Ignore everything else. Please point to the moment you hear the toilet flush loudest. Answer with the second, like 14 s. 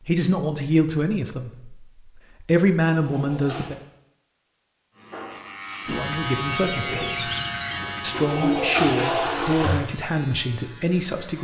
9 s.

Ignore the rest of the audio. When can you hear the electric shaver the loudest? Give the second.
7 s.